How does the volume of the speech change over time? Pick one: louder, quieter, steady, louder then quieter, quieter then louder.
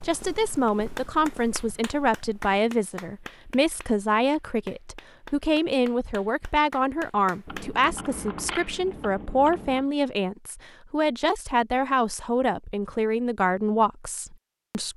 steady.